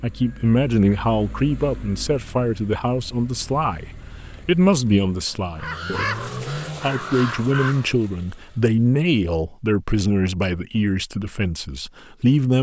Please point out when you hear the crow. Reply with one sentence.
You can hear the crow from 5.5 to 7.9 s.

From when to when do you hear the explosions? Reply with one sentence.
The explosions can't be heard in this clip.